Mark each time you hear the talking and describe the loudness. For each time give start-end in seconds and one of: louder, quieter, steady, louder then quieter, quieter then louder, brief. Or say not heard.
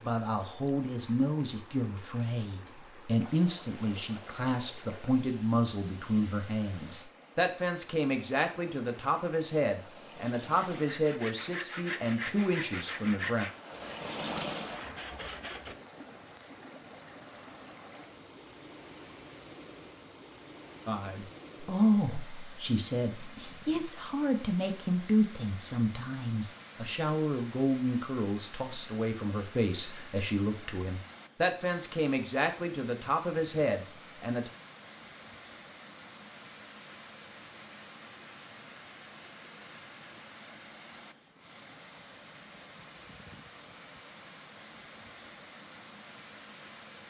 0.0-13.4 steady
20.9-34.5 steady.